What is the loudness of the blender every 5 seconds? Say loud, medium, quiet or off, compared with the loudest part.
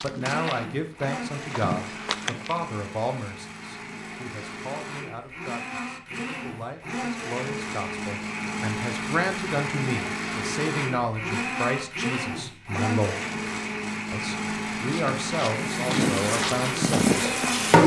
medium, loud, loud, loud.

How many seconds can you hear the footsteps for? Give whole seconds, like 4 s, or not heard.
5 s.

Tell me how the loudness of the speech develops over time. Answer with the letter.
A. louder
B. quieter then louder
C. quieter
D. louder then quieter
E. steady
B.